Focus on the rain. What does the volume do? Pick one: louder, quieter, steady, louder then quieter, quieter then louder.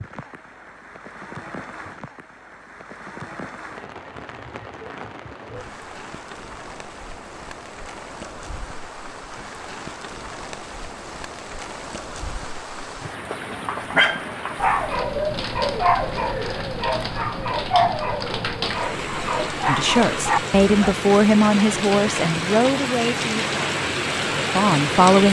louder.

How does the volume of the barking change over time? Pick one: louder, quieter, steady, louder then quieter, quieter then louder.
quieter then louder.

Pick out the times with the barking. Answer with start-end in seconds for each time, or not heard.
13.9-20.9.